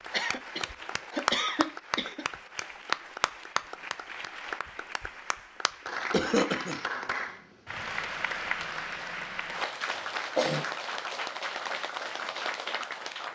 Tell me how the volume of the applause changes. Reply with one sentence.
The volume of the applause stays about the same.